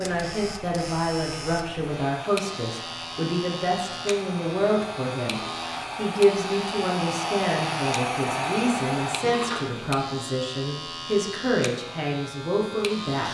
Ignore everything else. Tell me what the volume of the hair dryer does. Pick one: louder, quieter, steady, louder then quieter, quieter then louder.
louder.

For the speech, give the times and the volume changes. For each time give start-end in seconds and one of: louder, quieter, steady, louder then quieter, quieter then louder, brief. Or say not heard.
0.0-13.2 steady.